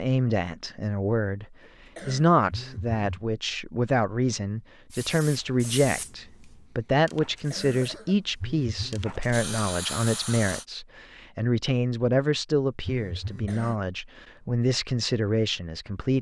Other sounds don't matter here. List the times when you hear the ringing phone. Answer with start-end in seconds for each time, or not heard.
2.5-3.2, 8.4-9.1, 12.8-13.6.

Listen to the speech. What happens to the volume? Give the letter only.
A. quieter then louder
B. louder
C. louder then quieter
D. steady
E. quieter
D.